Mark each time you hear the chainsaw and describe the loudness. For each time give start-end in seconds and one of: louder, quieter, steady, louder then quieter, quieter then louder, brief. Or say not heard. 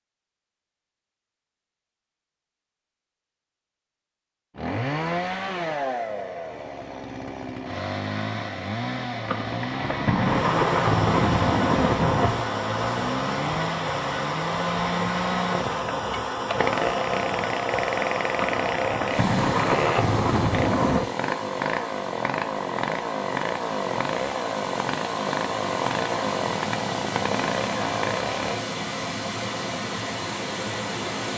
4.5-28.6 steady.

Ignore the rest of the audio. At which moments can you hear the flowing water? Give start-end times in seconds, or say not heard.
10.2-31.3.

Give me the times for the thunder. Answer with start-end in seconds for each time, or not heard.
9.2-12.5, 18.4-21.1.